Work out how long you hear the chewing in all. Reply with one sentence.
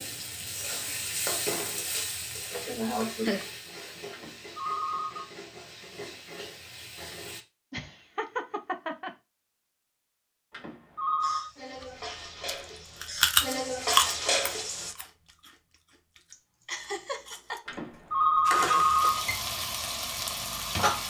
You can hear the chewing for 6 seconds altogether.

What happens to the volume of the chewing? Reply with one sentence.
The loudness of the chewing goes down, then up.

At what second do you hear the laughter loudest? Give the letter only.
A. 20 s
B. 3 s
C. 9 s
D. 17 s
B.